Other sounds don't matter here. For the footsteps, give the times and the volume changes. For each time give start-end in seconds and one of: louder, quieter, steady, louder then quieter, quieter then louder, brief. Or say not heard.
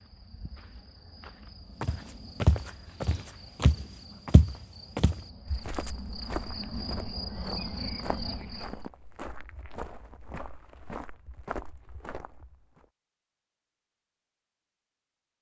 1.8-12.8 quieter.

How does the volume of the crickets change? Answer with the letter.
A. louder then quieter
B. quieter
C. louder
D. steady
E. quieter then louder
C.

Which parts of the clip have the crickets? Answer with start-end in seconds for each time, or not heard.
0.0-8.8.